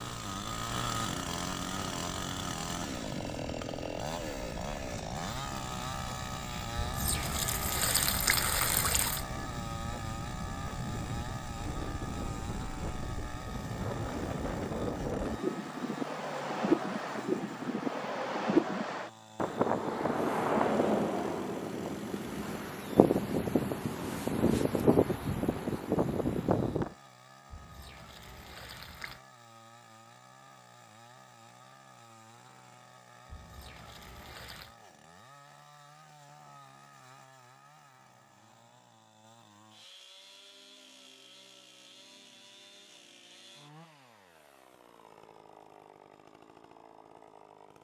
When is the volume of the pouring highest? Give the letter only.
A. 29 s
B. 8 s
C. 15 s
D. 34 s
B.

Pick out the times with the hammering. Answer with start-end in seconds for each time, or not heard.
not heard.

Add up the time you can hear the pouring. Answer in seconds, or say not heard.
6 s.